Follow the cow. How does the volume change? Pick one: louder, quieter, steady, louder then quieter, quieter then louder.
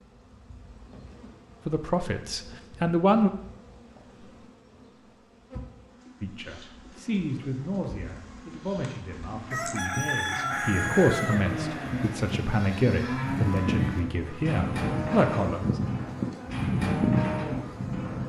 steady.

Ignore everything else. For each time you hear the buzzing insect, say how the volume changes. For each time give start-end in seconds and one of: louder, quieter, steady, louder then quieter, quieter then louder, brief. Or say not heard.
0.0-18.2 louder.